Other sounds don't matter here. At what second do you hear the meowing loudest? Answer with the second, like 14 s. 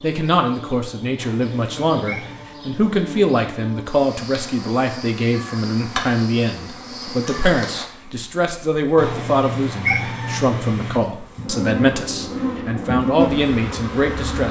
10 s.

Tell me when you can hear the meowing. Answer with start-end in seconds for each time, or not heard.
1.1-2.5, 8.9-11.0.